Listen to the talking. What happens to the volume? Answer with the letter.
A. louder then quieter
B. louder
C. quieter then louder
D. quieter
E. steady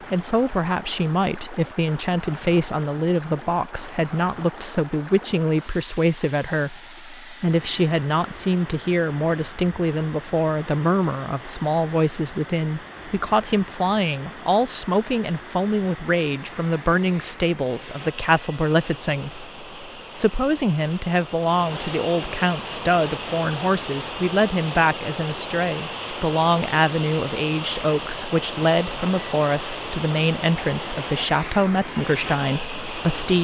E.